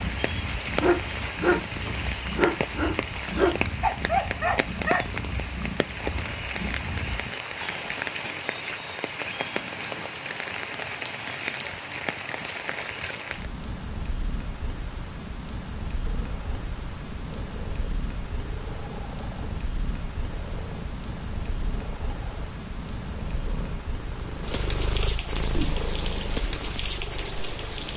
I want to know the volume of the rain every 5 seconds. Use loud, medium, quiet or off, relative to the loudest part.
loud, loud, loud, medium, medium, loud.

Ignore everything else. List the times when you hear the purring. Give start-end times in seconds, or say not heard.
0.0-7.3, 16.0-27.9.